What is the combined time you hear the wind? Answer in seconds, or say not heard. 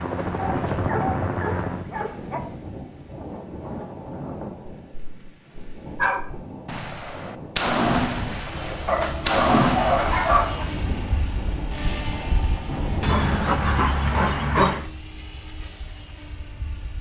14 s.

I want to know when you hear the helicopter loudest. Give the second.
1 s.